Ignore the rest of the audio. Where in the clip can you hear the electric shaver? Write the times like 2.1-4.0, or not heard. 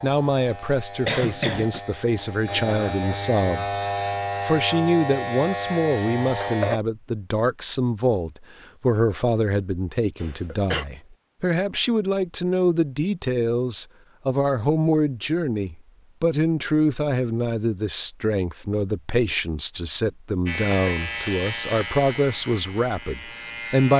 0.0-6.8, 20.4-23.9.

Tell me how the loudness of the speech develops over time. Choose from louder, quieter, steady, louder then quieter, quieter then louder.
steady.